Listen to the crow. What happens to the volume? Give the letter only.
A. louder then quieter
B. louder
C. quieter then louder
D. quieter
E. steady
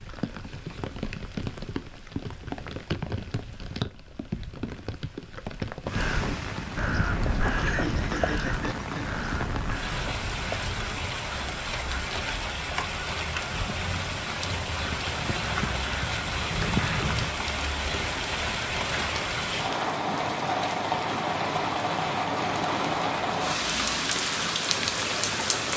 C.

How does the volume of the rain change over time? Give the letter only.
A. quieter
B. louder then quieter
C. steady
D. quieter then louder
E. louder
E.